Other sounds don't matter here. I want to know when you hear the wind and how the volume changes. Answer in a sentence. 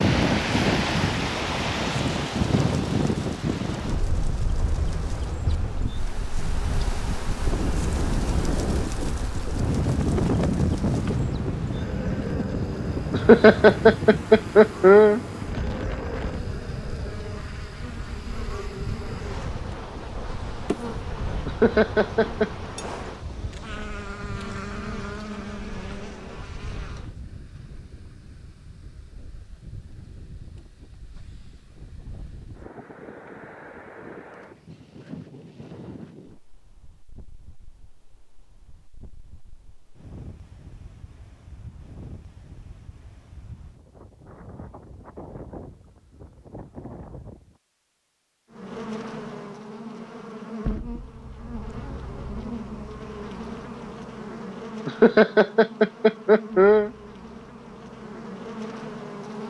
You can hear the wind from 0.0 to 47.6 s, getting quieter.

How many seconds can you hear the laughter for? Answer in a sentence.
The laughter can be heard for 5 seconds in total.